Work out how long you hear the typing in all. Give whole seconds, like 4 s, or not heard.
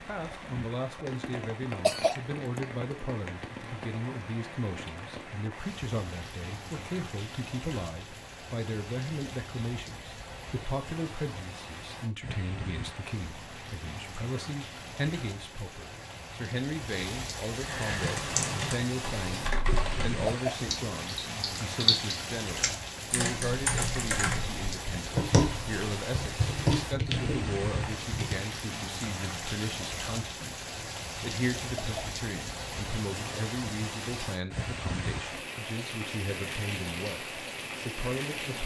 11 s.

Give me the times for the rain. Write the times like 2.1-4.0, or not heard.
0.0-38.6.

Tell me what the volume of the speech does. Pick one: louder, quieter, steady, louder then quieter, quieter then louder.
steady.